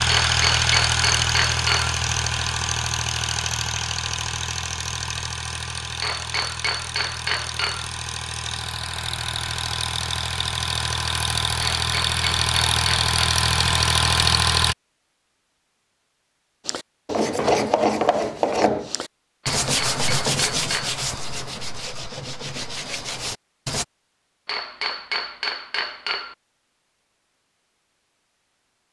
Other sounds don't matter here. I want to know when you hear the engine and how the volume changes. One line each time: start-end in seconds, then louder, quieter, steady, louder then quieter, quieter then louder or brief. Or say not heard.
0.0-14.8 quieter then louder.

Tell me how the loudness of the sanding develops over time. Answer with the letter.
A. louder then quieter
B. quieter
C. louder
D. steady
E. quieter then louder
B.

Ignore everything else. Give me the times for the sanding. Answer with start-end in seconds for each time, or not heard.
16.6-23.9.